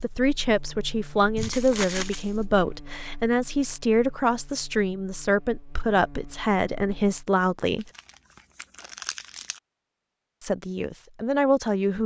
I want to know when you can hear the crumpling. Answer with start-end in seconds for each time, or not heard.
1.4-2.4, 7.8-9.6.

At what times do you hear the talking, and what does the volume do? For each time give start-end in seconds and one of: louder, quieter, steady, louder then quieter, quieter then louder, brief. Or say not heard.
0.0-7.8 steady
10.4-12.0 brief.